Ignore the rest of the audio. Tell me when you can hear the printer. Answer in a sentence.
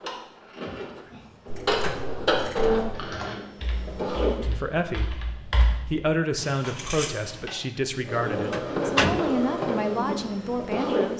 You can hear the printer from 0.0 to 4.3 s and from 8.1 to 11.1 s.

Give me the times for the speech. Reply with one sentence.
You can hear the speech from 4.5 to 11.1 s.